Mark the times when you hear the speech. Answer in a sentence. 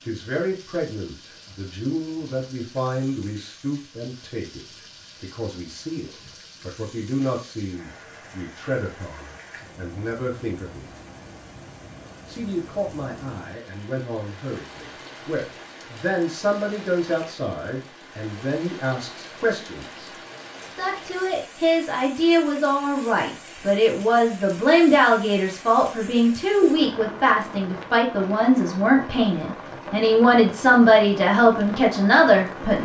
The speech can be heard from 0.0 to 10.8 s and from 12.2 to 32.8 s.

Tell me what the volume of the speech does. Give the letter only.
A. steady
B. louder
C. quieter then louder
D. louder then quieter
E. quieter
B.